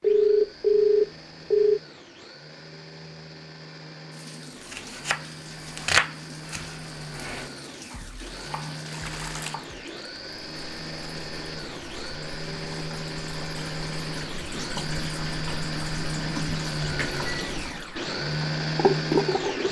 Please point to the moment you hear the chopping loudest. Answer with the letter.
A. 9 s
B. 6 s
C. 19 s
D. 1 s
B.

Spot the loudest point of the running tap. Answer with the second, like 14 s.
19 s.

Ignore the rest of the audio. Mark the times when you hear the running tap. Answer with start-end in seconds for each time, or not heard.
4.1-19.6.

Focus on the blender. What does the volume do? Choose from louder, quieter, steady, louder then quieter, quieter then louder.
louder.